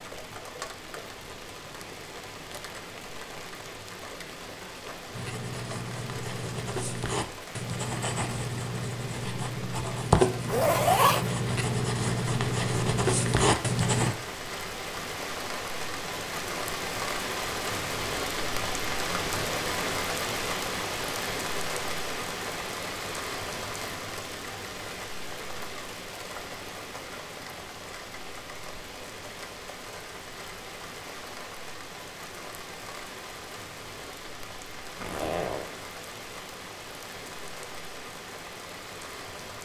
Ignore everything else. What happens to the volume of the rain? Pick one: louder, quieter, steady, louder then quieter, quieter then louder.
louder then quieter.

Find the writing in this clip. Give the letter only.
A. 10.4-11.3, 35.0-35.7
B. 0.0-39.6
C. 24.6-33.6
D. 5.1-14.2
D.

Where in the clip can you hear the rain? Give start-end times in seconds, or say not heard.
0.0-39.6.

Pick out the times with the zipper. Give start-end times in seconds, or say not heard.
10.4-11.3, 35.0-35.7.